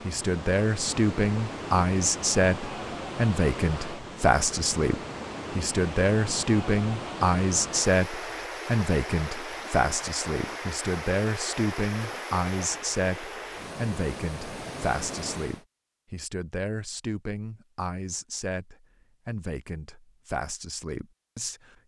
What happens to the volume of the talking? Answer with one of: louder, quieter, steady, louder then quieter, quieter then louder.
quieter.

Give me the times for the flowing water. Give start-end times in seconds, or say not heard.
0.0-15.7.